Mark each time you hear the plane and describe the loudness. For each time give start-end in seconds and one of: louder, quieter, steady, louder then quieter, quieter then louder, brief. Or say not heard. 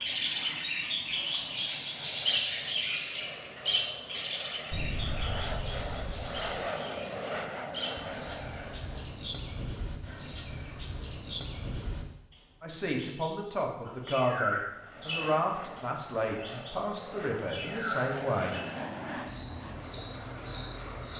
0.0-9.2 louder
14.7-21.1 louder then quieter.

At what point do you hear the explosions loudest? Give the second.
5 s.